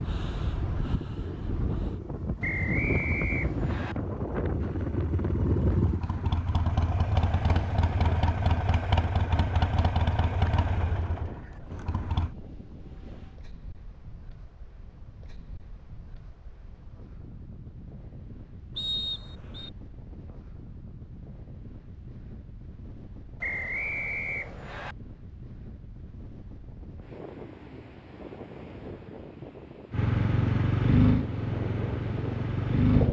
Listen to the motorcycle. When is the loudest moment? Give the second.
31 s.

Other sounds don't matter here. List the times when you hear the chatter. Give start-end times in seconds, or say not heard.
not heard.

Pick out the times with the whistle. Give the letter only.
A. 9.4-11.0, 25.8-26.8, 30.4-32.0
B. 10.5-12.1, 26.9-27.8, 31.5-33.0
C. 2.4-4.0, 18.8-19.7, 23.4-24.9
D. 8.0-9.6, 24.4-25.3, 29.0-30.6
C.